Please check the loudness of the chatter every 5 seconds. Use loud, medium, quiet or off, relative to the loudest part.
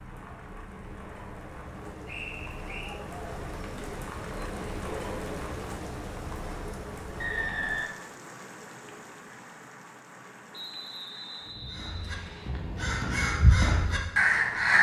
loud, loud, off.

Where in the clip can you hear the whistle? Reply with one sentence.
The whistle can be heard from 2.0 to 3.0 s, from 7.2 to 7.9 s and from 10.5 to 12.5 s.